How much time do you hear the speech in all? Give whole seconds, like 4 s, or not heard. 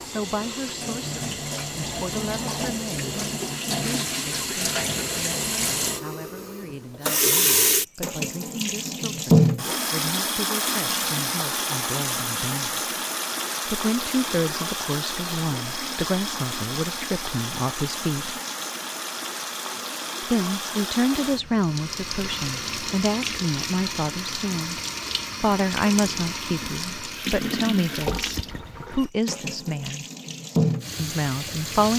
28 s.